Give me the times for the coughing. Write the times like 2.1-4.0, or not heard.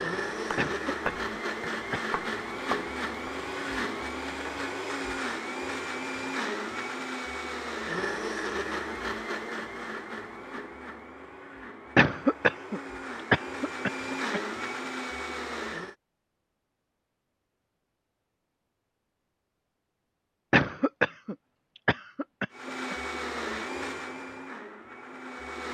0.6-2.0, 11.9-14.4, 20.5-22.9.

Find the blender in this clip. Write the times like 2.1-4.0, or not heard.
0.0-15.9, 22.5-25.6.